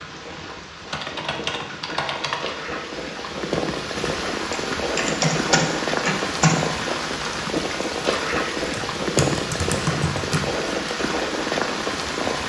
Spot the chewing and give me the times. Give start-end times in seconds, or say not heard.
not heard.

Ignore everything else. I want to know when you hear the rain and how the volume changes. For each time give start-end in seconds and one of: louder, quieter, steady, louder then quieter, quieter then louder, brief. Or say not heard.
0.0-12.4 louder.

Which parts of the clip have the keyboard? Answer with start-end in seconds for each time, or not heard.
0.5-2.6, 4.5-6.6, 8.6-10.4.